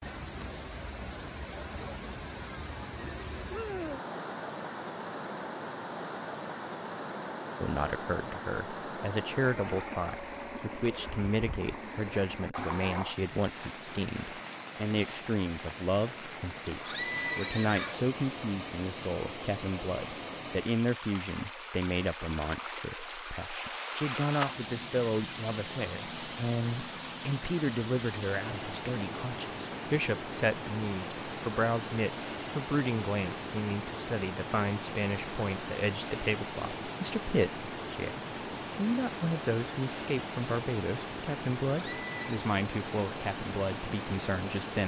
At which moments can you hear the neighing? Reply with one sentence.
The neighing can be heard from 16.6 to 18.1 s and from 41.7 to 42.5 s.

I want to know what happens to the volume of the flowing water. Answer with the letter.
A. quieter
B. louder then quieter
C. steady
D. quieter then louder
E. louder
C.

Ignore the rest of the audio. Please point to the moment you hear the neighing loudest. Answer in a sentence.
The volume of the neighing peaks at 17 seconds.